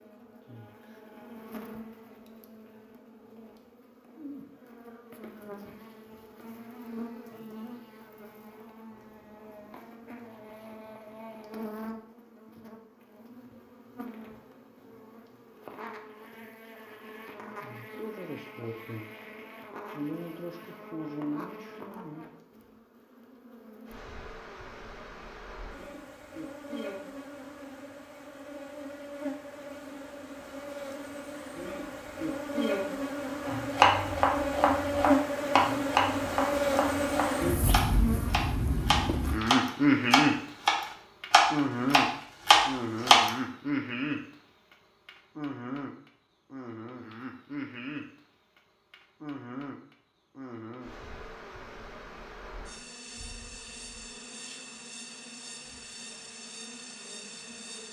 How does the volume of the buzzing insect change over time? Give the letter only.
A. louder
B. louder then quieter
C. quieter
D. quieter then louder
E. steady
B.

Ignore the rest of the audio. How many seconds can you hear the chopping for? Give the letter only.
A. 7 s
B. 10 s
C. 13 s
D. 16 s
B.